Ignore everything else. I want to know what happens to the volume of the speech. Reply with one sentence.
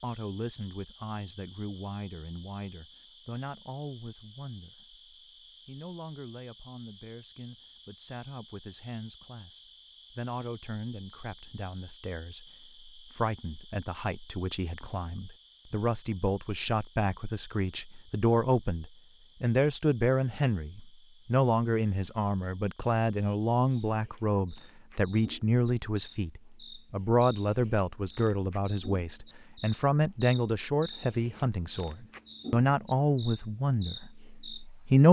The volume of the speech goes up.